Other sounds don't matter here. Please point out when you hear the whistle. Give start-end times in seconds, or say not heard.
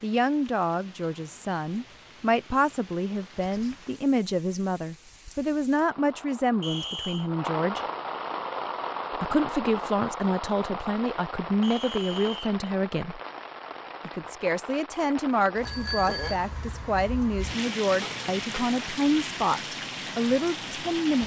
6.6-7.3, 11.6-12.5.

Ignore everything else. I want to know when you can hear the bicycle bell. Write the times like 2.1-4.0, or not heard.
15.6-16.4.